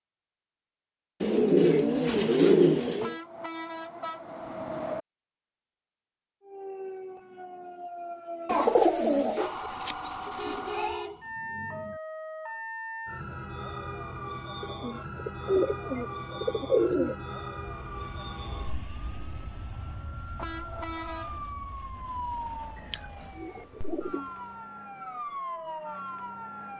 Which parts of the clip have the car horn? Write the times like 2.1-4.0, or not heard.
3.0-5.0, 10.2-12.0, 20.4-21.4.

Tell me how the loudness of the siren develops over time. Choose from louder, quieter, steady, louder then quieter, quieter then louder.
steady.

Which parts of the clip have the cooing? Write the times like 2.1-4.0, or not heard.
1.2-3.1, 8.4-11.1, 14.6-17.1, 22.8-24.2.